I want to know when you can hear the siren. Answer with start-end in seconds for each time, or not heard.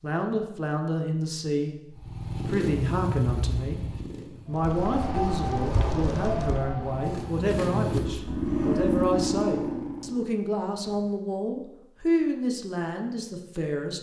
4.5-7.5.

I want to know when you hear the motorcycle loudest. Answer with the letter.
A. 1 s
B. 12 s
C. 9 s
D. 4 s
C.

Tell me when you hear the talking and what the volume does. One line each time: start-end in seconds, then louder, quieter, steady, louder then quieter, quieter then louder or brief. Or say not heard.
0.0-13.9 steady.